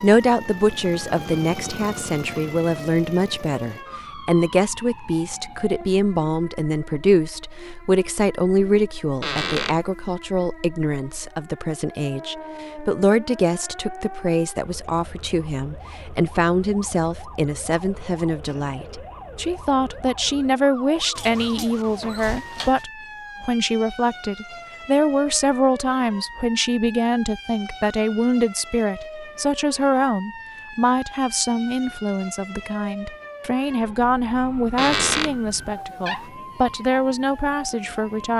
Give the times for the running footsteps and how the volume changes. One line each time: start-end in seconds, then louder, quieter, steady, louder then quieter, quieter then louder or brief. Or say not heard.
not heard.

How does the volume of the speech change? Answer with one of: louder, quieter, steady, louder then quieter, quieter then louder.
steady.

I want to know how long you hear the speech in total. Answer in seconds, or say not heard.
38 s.